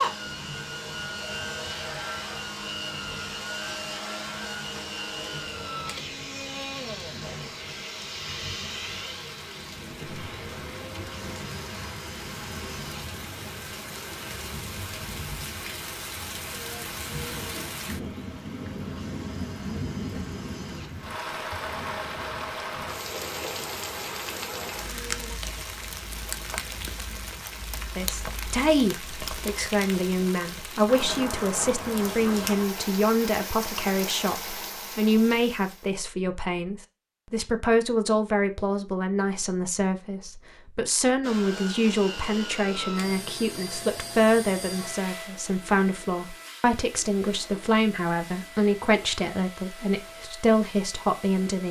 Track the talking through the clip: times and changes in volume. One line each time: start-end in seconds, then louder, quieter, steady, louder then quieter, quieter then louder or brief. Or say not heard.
27.9-51.6 steady.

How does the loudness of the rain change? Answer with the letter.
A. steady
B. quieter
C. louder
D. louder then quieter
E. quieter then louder
C.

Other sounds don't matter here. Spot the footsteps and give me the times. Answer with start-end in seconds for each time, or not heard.
not heard.